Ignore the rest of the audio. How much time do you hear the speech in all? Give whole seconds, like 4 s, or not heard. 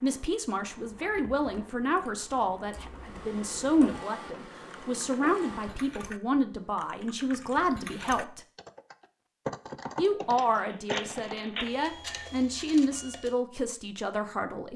13 s.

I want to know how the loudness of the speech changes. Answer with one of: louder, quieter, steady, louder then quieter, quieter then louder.
steady.